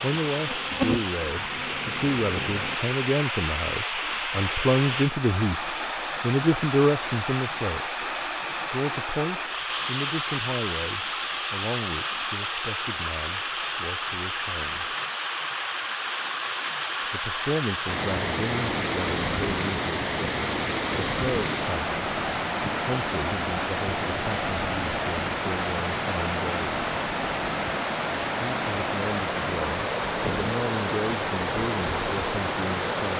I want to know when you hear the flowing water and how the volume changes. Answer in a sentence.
You can hear the flowing water from 0.0 to 33.1 s, at a steady volume.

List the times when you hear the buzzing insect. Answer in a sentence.
You can hear the buzzing insect from 0.2 to 2.8 s.